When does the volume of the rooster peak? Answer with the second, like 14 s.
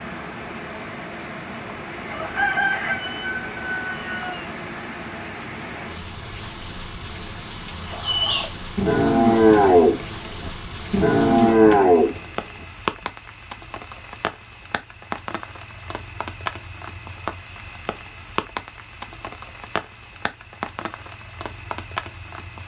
3 s.